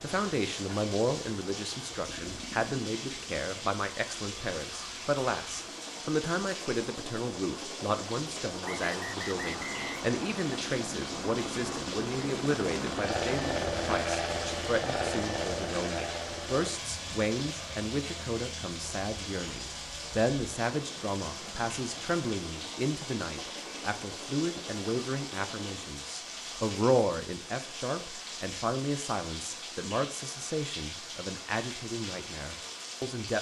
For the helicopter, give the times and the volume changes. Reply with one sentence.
You can hear the helicopter from 0.0 to 25.9 s, getting louder then quieter.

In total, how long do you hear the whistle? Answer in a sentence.
The whistle can be heard for 2 seconds in total.